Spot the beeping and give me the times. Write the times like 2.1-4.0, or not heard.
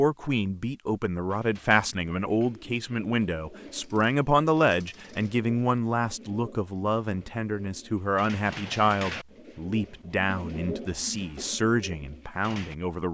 not heard.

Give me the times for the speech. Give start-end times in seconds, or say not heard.
0.0-13.0.